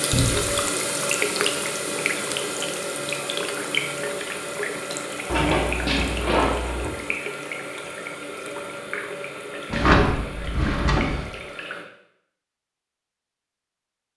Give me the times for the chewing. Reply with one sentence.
The chewing can't be heard in this clip.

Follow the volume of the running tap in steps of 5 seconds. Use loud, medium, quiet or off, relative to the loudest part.
loud, medium, medium.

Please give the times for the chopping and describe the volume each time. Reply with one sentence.
You can't hear the chopping here.